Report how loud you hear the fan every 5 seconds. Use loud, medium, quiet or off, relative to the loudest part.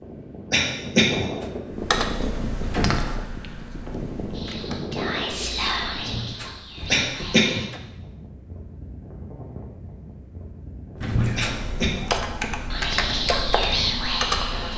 loud, medium, medium.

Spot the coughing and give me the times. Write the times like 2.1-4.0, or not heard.
0.5-1.2, 6.9-7.6, 11.3-12.1.